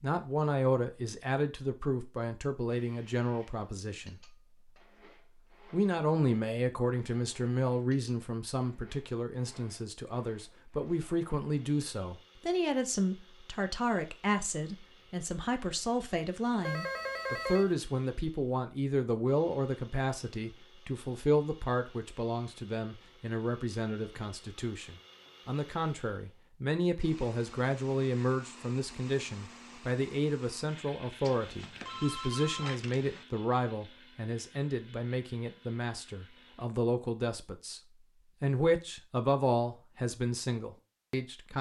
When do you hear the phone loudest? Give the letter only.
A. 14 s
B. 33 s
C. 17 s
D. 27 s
C.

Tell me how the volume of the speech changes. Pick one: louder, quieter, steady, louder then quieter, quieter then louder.
steady.